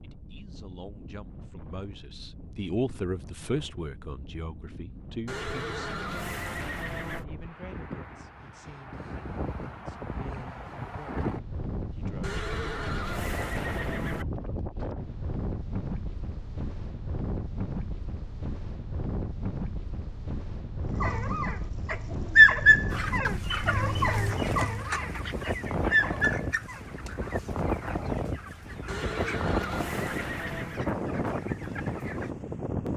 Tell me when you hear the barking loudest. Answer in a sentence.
The volume of the barking peaks at 23 seconds.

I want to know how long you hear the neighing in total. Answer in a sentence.
The neighing can be heard for 6 seconds in total.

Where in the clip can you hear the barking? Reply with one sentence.
You can hear the barking from 20.9 to 26.8 s.